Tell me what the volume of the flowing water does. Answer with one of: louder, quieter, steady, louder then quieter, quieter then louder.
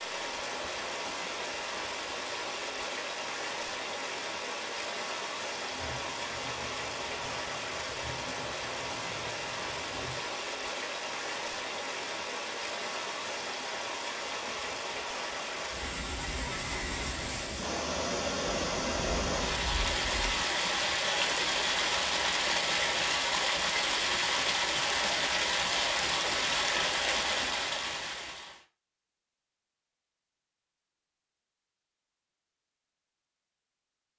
louder.